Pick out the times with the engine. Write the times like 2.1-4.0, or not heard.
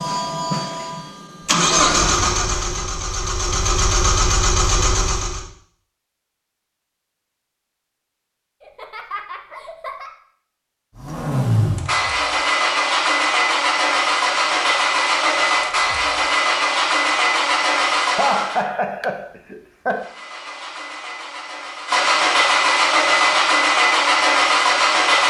0.0-5.5, 10.9-18.6, 19.9-25.2.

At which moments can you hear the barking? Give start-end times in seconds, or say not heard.
not heard.